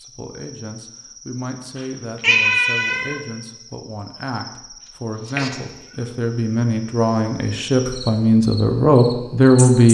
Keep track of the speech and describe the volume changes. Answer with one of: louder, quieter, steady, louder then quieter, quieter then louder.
louder.